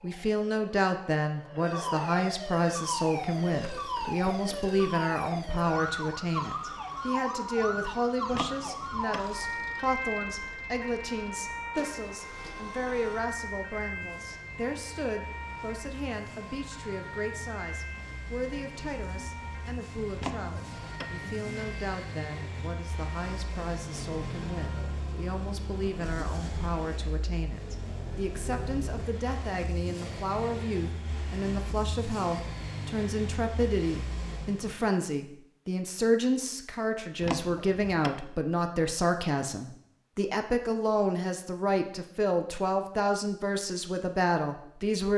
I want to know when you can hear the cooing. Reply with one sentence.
The cooing can't be heard in this clip.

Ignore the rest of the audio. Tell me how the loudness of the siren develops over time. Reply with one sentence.
The loudness of the siren goes down.